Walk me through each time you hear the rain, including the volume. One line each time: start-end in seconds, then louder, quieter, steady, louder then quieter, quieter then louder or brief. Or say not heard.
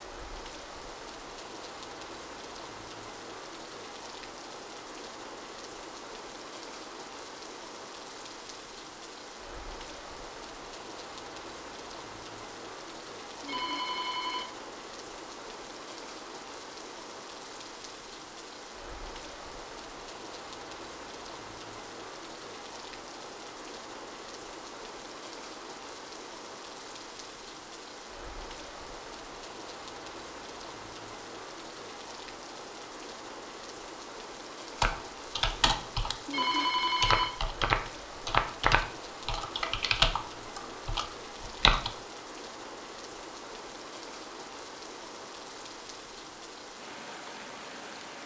0.0-48.2 steady.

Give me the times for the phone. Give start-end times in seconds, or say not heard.
13.4-14.4, 36.2-37.3.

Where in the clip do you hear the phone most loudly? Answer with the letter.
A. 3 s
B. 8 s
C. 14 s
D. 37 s
D.